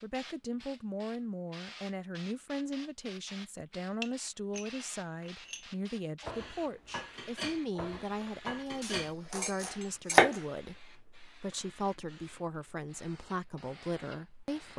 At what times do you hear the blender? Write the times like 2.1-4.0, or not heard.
not heard.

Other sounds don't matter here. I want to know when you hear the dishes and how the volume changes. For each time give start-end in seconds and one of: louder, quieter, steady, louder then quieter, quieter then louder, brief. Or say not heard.
4.0-10.2 louder.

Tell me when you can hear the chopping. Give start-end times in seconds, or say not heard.
8.8-10.4.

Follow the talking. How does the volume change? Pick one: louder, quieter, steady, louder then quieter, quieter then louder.
steady.